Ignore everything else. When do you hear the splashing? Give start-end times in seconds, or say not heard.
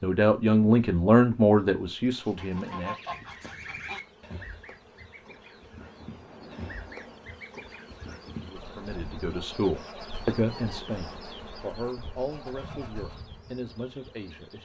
5.8-7.3.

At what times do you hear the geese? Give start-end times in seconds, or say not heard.
2.2-13.3.